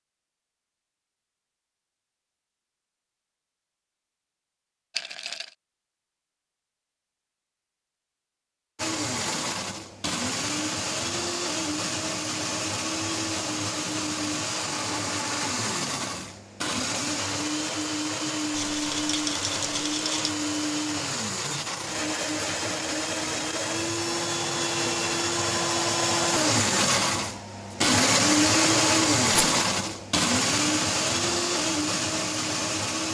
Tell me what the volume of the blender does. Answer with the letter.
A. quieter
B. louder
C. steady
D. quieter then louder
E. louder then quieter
B.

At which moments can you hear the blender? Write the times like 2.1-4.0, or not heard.
8.8-33.0.